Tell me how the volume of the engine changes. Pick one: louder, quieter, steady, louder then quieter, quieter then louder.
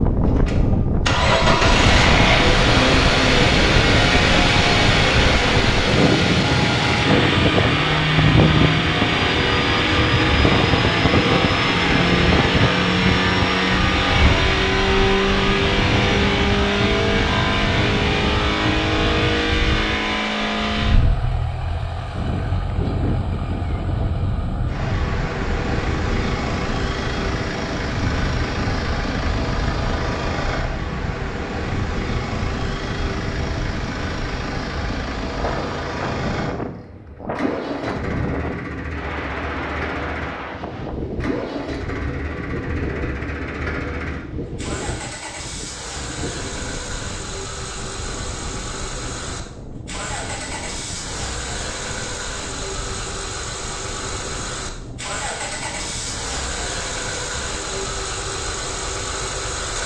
quieter.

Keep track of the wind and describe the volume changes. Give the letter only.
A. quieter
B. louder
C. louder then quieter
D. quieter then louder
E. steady
A.